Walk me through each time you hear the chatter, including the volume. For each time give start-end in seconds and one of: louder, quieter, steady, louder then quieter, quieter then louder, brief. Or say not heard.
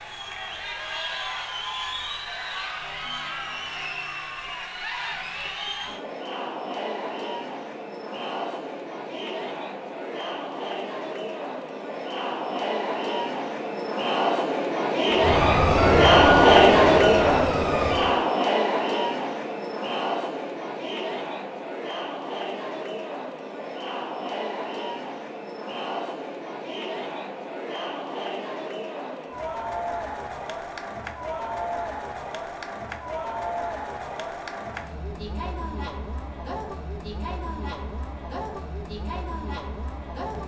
0.0-40.4 louder then quieter.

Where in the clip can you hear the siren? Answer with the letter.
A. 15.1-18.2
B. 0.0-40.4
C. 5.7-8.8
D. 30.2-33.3
A.